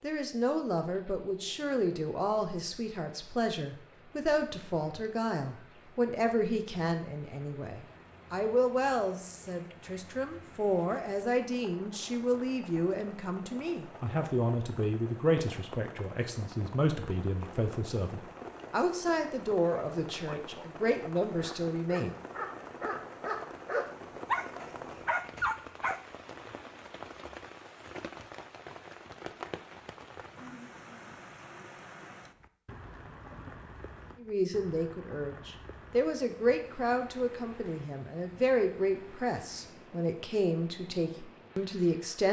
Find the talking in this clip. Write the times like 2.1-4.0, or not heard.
0.0-22.1, 34.2-42.2.